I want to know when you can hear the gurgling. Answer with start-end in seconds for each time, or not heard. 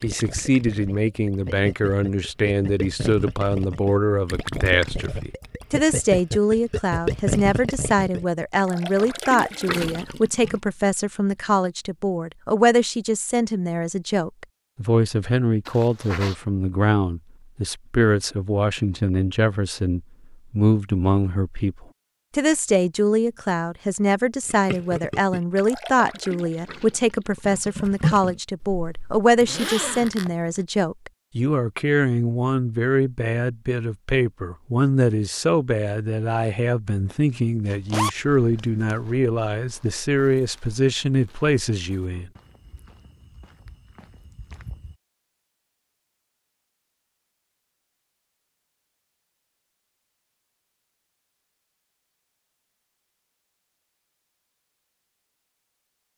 0.0-10.7, 24.4-28.4.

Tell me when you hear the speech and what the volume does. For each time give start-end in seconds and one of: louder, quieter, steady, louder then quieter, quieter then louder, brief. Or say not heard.
0.0-42.3 steady.